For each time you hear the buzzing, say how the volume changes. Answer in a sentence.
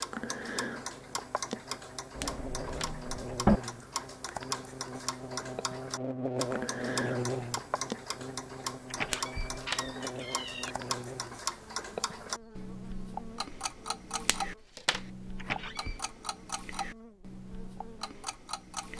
You can hear the buzzing from 0.1 to 18.9 s, getting louder then quieter.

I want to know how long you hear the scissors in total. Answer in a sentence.
You can hear the scissors for 2 seconds altogether.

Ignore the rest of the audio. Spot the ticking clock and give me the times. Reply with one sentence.
The ticking clock can be heard from 0.0 to 18.9 s.